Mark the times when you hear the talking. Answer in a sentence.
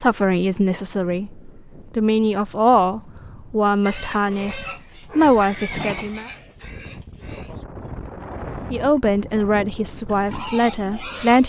The talking can be heard from 0.0 to 6.3 s and from 8.7 to 11.4 s.